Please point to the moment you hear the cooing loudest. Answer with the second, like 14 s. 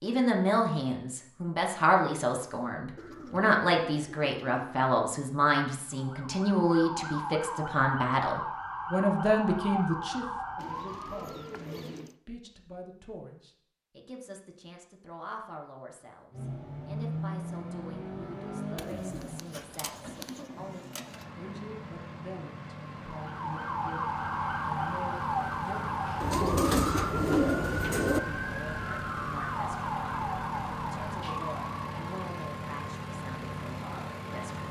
27 s.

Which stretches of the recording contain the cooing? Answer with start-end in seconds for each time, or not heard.
3.0-4.7, 10.6-12.2, 18.8-20.5, 26.2-28.2.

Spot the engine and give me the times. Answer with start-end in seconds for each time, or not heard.
16.3-34.6.